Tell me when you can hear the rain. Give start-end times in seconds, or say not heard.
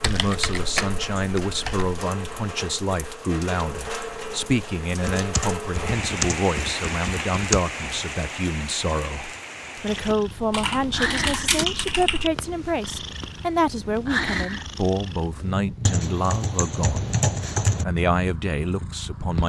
0.0-10.2.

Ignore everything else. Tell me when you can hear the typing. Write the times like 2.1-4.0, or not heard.
0.0-2.0, 5.0-7.7, 10.5-12.3, 15.8-17.9.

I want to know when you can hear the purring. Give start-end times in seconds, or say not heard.
9.8-19.4.